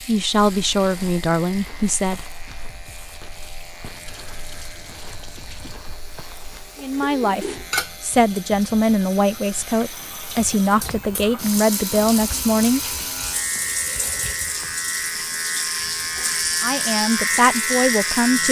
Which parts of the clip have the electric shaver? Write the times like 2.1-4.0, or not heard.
0.0-18.4.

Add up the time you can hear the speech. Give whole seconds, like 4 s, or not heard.
10 s.